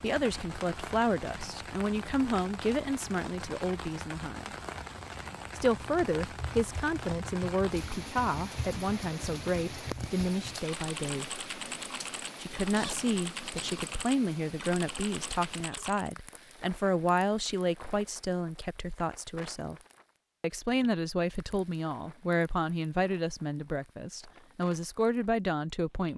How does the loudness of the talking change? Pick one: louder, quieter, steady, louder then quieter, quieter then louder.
steady.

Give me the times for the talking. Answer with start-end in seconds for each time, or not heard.
0.0-4.5, 5.5-11.2, 12.4-19.8, 20.4-26.1.